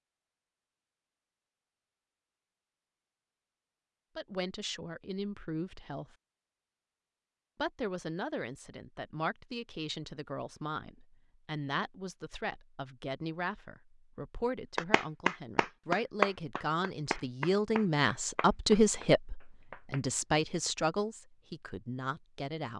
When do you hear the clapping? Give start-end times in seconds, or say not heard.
14.8-20.0.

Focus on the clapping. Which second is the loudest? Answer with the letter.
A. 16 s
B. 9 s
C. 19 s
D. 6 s
A.